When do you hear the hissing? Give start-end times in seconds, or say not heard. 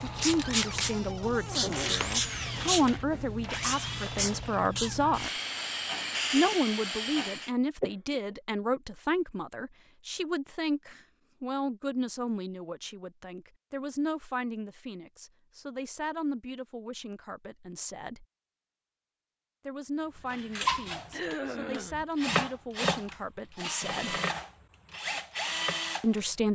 0.0-7.5.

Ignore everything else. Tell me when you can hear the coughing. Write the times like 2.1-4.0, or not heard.
7.8-8.3, 21.1-22.1.